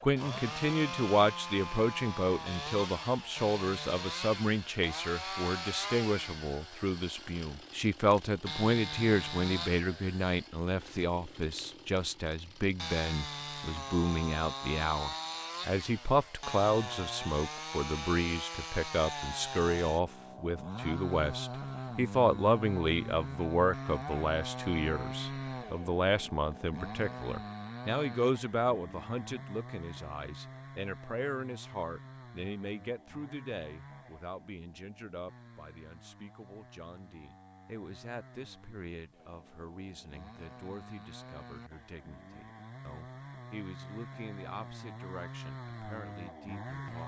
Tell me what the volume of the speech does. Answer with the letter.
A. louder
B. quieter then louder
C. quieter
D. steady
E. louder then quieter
C.